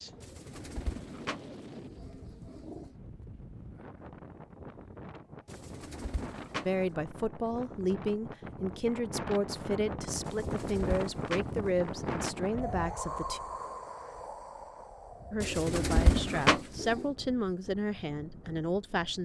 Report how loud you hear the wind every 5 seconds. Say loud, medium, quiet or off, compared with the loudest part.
medium, medium, loud, quiet.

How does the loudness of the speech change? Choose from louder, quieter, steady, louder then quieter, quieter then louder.
steady.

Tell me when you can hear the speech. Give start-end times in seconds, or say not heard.
6.7-13.4, 15.3-19.1.